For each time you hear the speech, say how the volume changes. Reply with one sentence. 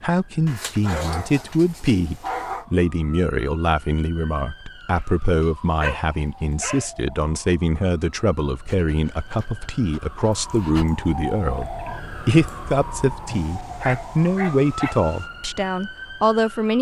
You can hear the speech from 0.0 to 16.7 s, at a steady volume.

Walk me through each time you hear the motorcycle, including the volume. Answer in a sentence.
You can't hear the motorcycle here.